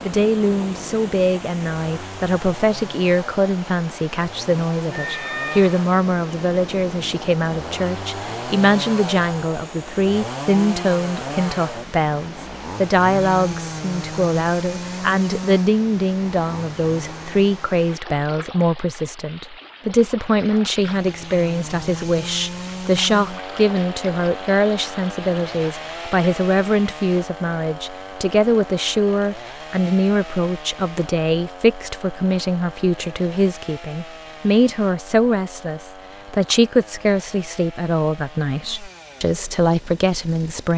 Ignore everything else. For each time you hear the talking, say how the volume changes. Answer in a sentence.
You can hear the talking from 0.0 to 40.7 s, at a steady volume.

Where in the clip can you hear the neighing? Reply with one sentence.
You can hear the neighing from 4.9 to 5.8 s.